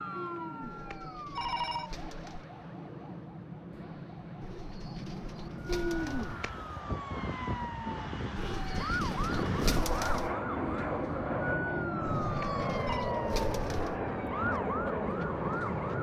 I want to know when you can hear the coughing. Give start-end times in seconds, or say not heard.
not heard.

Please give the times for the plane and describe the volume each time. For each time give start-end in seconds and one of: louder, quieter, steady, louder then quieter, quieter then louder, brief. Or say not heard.
0.0-15.9 louder.